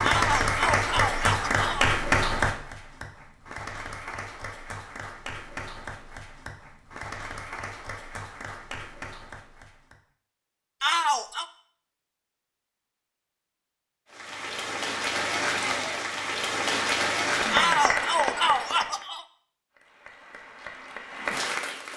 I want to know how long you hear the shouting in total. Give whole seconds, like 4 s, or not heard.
4 s.